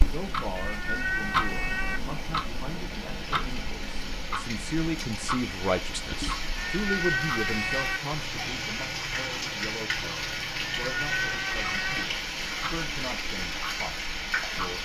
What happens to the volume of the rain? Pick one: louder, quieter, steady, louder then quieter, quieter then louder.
louder.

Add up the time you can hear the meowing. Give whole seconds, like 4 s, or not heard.
4 s.